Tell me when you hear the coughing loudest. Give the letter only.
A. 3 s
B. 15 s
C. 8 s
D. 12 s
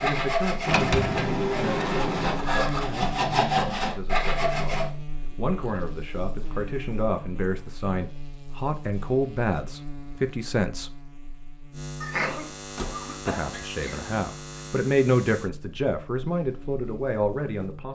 D.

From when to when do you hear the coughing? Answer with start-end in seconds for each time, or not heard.
12.0-14.0.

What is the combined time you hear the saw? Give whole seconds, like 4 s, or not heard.
5 s.